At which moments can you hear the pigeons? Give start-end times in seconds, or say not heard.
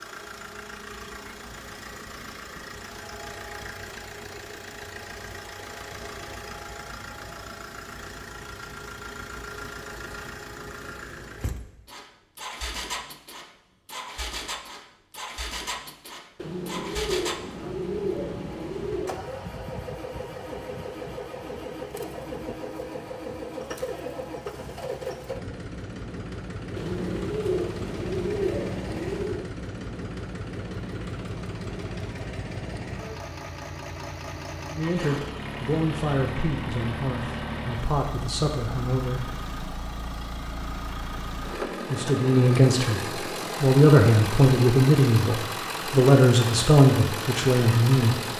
16.4-19.2, 26.8-29.4.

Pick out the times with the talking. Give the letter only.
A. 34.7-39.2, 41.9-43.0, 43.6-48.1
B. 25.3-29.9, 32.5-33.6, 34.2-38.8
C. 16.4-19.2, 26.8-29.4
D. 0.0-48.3
A.